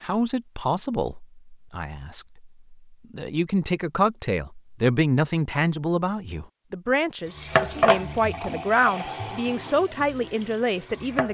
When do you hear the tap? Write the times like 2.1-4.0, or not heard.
7.3-11.2.